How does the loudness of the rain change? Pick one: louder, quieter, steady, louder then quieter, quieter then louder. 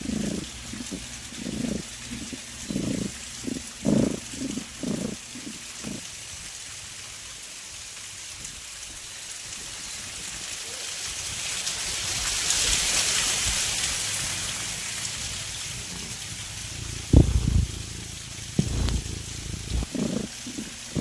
louder then quieter.